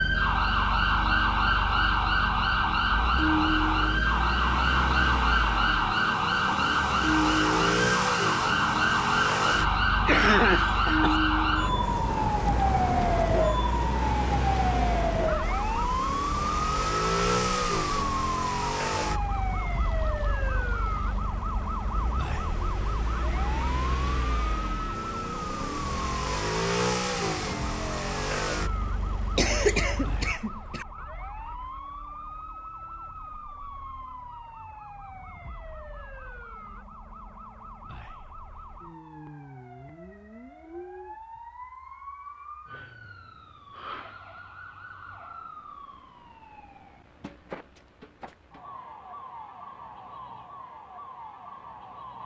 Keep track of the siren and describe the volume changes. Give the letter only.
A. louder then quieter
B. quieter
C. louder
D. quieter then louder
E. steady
B.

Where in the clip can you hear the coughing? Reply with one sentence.
The coughing can be heard from 9.7 to 11.2 s and from 29.4 to 30.9 s.